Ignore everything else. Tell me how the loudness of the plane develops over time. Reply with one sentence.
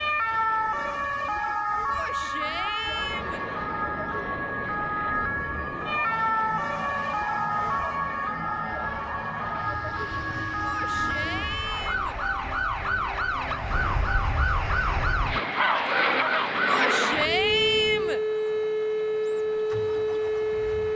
The volume of the plane goes up.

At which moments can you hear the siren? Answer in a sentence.
You can hear the siren from 0.0 to 20.9 s.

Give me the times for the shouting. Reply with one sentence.
The shouting can be heard from 1.9 to 3.5 s, from 10.6 to 12.2 s and from 16.6 to 18.2 s.